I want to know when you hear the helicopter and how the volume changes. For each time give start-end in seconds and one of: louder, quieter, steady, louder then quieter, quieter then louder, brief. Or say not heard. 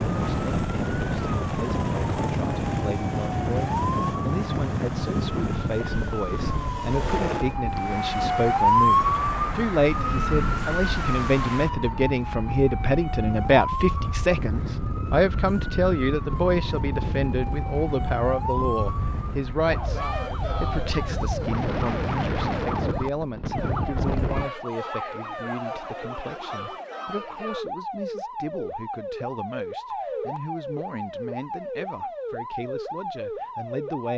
0.0-7.6 steady.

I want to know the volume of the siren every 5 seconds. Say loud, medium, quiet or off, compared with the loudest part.
medium, loud, medium, medium, medium, medium, medium.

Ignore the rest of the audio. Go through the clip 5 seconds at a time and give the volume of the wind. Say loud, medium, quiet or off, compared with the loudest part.
loud, medium, medium, medium, loud, off, off.